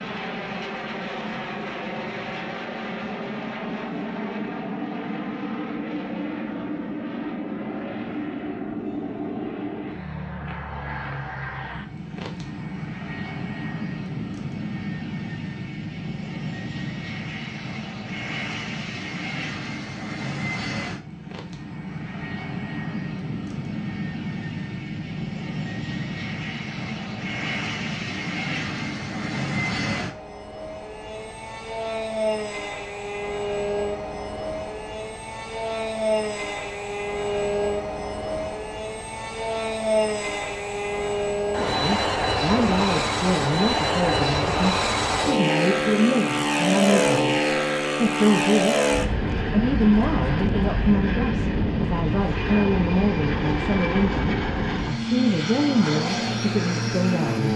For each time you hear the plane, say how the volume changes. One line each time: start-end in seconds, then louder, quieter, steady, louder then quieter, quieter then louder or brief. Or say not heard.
0.0-57.5 louder.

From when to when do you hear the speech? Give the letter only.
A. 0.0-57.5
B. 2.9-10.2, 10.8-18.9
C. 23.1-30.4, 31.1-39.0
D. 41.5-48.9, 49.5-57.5
D.